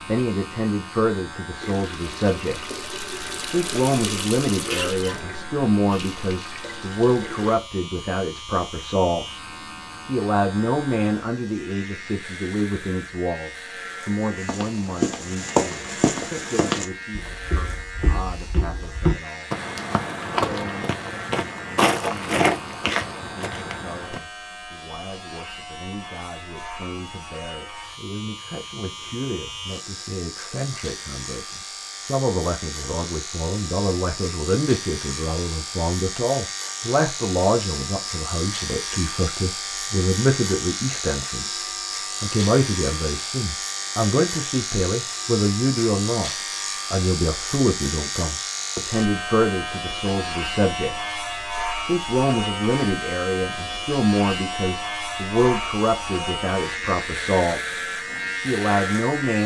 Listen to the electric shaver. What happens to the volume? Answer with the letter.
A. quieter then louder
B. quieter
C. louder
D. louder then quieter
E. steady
C.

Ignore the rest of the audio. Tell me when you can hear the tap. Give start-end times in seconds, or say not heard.
1.6-7.5.